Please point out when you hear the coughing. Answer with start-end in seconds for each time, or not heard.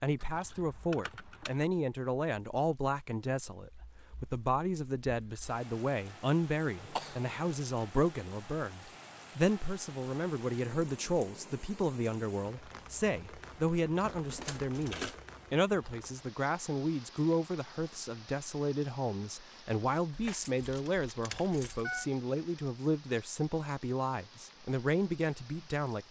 6.8-7.6.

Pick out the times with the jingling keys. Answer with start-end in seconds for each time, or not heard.
0.2-1.6, 14.1-15.2, 20.1-22.1.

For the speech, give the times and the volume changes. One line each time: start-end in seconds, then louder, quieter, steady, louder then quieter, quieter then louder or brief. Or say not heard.
0.0-26.0 steady.